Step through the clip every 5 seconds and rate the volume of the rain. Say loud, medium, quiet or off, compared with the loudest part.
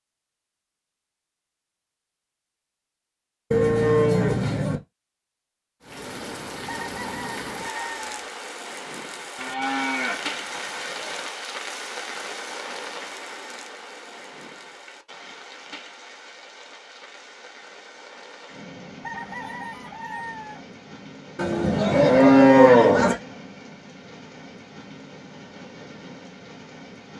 off, loud, loud, medium, medium, medium.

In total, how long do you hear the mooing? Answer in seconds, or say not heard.
5 s.